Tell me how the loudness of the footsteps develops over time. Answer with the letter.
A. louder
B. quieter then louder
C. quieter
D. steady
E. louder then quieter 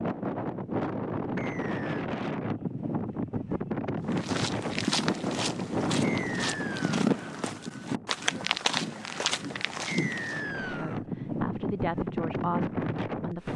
D.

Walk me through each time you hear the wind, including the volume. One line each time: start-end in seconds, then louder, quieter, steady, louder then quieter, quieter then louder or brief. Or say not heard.
0.0-13.5 quieter then louder.